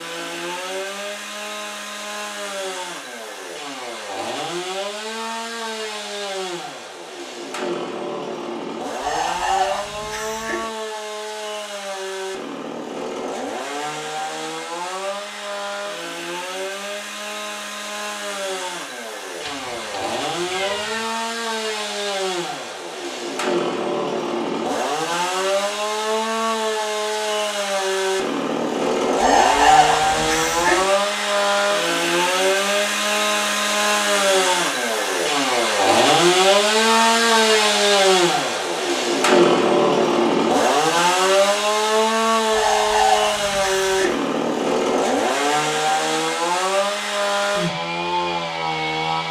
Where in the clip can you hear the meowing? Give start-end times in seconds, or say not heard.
19.4-21.1.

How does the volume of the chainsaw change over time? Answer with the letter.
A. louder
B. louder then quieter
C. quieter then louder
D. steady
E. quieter
A.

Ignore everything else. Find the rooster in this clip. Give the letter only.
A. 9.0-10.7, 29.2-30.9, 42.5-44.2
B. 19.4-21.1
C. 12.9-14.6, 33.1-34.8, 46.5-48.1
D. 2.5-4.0
A.